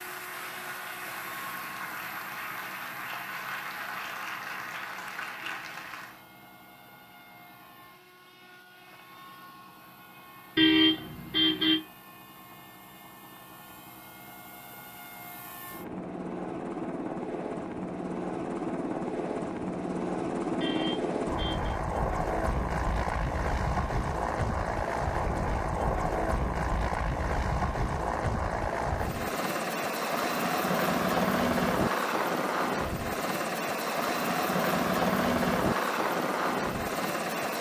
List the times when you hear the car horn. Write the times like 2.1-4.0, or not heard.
10.6-11.8, 20.6-21.8.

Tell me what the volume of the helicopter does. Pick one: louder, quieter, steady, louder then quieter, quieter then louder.
louder.